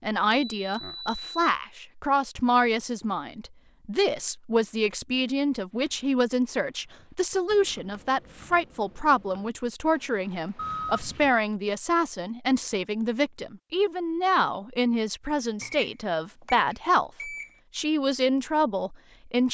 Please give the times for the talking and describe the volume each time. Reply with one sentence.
You can hear the talking from 0.0 to 19.4 s, at a steady volume.